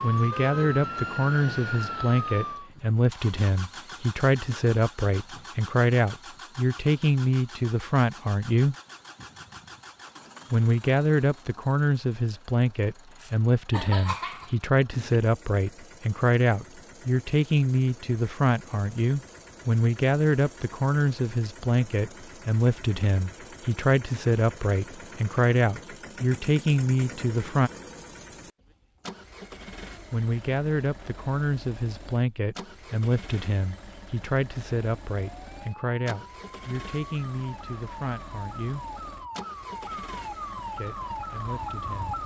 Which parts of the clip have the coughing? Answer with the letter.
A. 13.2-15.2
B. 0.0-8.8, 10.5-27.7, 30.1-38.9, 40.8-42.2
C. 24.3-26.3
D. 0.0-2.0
A.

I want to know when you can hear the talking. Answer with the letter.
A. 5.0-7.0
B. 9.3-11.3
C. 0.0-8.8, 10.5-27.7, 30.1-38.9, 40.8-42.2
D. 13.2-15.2
C.